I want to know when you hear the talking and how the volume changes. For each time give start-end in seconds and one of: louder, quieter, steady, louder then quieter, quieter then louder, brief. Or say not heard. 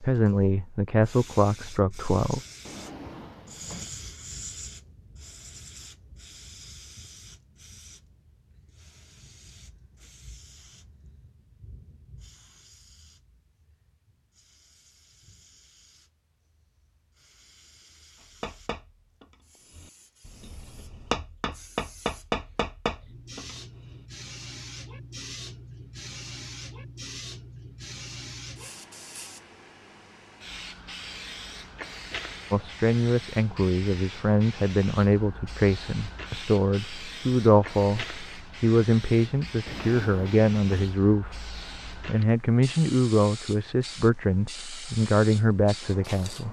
0.0-2.4 brief
32.5-46.4 steady.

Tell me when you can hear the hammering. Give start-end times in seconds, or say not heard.
18.4-24.0.